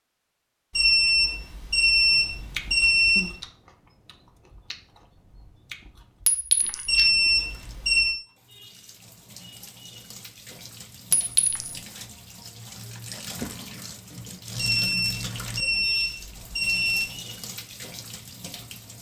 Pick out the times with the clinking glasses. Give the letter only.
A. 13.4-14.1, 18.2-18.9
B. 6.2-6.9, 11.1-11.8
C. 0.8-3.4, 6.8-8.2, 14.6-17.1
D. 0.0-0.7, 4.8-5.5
B.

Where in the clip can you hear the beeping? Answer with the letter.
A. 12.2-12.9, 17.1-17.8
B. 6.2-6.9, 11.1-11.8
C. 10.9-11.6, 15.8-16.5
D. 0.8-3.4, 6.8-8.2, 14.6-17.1
D.